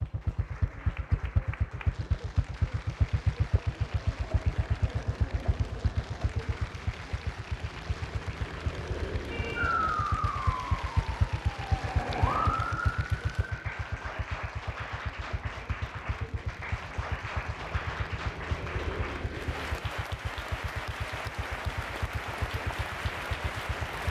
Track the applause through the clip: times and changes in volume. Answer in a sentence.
The applause can be heard from 0.0 to 24.0 s, getting louder.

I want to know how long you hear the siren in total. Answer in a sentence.
The siren can be heard for 5 seconds in total.